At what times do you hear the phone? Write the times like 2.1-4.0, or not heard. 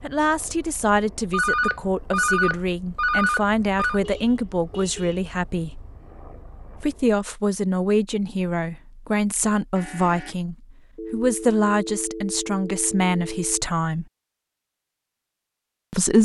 1.3-4.0, 10.9-13.7.